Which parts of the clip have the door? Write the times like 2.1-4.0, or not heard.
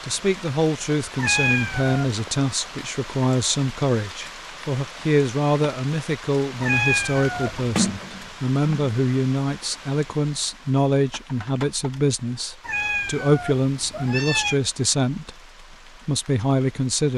7.8-8.9.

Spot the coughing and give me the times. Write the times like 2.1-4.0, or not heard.
not heard.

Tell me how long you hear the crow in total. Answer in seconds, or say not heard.
not heard.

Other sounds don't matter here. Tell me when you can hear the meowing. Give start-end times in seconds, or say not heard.
1.1-2.1, 6.6-7.8, 12.6-14.6.